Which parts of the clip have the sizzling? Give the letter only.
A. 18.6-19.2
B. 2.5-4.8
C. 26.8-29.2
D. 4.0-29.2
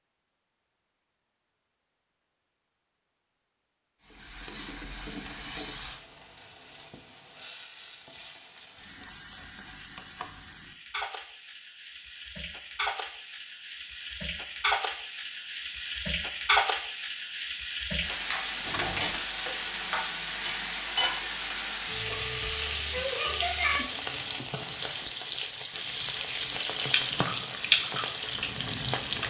D.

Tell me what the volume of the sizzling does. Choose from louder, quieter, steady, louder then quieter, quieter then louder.
louder.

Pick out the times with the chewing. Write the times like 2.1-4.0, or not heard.
26.8-29.2.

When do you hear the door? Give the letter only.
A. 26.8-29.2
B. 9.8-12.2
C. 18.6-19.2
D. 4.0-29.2
C.